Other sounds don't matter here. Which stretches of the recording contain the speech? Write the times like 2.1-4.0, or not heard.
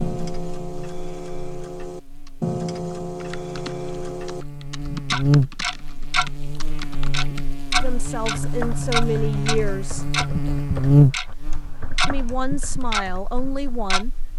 7.8-10.1, 12.1-14.3.